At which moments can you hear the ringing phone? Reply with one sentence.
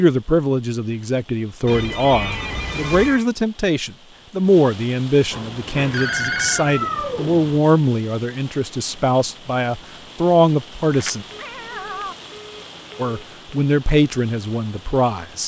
You can hear the ringing phone from 1.6 to 3.2 s, from 5.8 to 6.7 s and from 10.9 to 13.6 s.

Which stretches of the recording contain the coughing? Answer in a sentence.
You can't hear the coughing here.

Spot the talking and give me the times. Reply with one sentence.
You can hear the talking from 0.0 to 11.2 s and from 12.9 to 15.4 s.